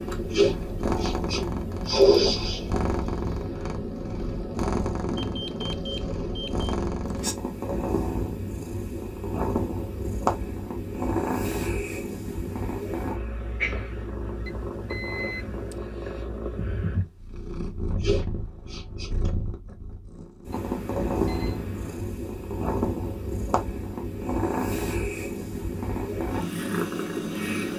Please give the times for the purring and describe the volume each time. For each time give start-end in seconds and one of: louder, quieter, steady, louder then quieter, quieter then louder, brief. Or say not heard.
0.0-27.7 steady.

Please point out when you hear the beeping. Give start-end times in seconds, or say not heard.
5.2-6.8, 14.4-15.8, 20.5-22.1.